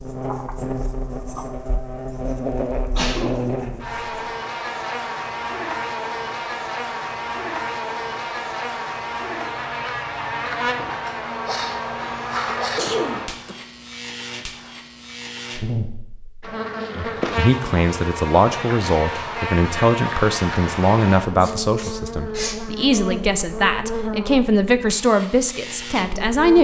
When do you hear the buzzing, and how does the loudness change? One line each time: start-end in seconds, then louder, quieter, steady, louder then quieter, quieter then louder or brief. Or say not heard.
0.0-26.6 steady.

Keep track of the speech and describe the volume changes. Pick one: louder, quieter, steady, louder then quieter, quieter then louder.
steady.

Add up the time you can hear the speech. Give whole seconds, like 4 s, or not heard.
10 s.